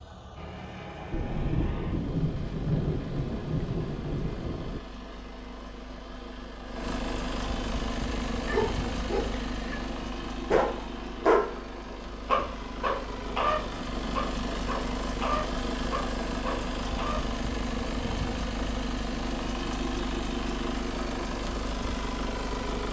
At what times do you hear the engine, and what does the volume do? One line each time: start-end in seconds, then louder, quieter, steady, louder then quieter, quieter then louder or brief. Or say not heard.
0.0-22.8 louder.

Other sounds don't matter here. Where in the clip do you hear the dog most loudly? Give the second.
11 s.